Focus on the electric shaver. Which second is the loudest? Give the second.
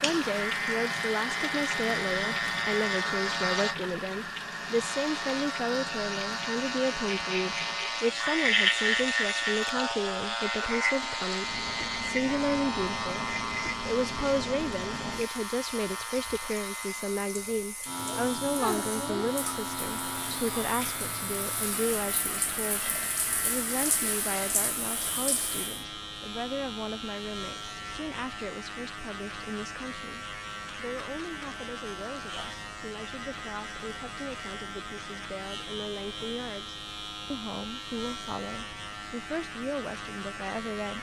9 s.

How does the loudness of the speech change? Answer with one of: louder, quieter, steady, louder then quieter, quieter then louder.
quieter.